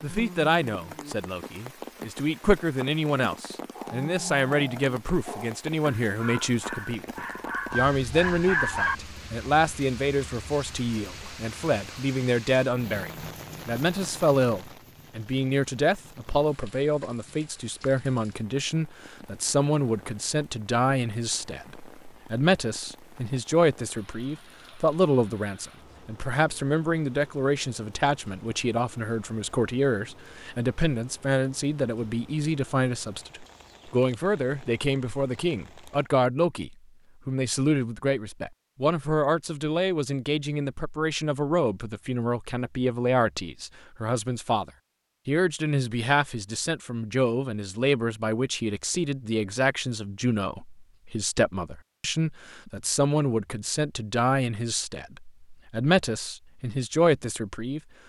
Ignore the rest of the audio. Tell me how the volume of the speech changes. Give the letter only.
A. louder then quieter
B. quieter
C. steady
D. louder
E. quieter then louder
C.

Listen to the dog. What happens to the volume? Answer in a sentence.
The volume of the dog goes up.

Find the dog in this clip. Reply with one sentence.
The dog can be heard from 3.7 to 8.9 s.